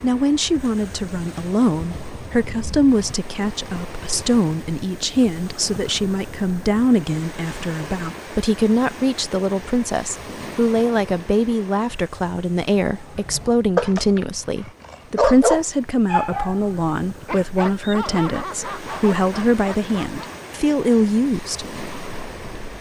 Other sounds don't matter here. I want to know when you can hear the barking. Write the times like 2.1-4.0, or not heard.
12.9-20.4.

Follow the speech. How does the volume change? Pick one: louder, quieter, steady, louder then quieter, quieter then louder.
steady.